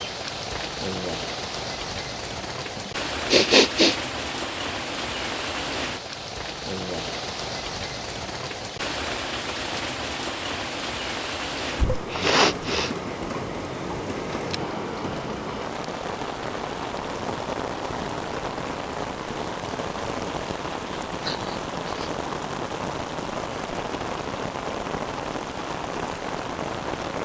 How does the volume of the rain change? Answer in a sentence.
The loudness of the rain stays about the same.